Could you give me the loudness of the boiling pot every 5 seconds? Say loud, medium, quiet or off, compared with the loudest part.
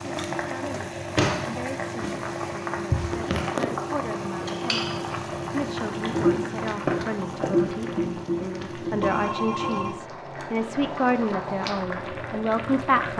loud, loud, medium.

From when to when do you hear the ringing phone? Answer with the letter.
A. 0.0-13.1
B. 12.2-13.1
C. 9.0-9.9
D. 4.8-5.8
C.